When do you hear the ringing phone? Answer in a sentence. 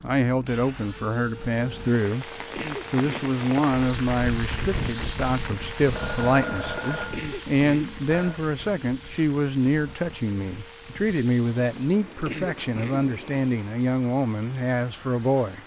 You can hear the ringing phone from 6.0 to 8.4 s.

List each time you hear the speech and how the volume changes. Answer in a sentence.
You can hear the speech briefly from 0.0 to 2.3 s; and from 2.9 to 15.6 s, at a steady volume.